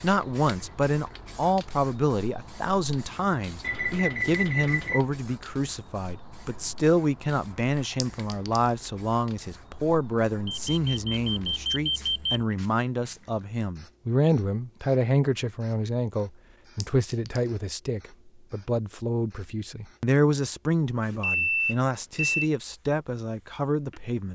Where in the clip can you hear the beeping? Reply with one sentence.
The beeping can be heard from 3.6 to 5.0 s, from 10.4 to 12.4 s and from 21.1 to 22.5 s.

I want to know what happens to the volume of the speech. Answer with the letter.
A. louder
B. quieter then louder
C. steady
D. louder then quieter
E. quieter
C.